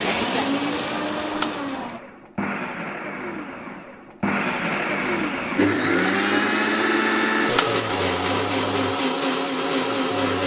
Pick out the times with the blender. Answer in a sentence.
You can hear the blender from 0.0 to 10.4 s.